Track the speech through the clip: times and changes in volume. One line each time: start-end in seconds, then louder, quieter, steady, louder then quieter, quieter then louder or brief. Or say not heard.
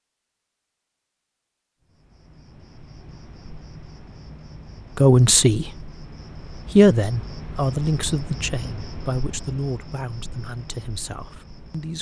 5.0-5.9 brief
6.5-11.9 quieter.